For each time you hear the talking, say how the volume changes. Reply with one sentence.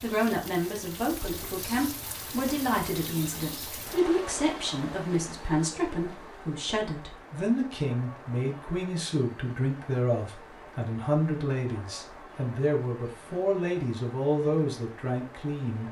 You can hear the talking from 0.0 to 15.8 s, at a steady volume.